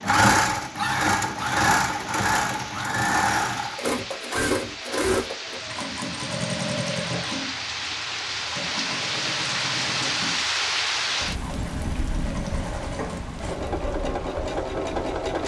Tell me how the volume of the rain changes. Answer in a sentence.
The loudness of the rain goes up, then down.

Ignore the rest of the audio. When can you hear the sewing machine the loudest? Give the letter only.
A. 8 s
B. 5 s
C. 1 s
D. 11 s
C.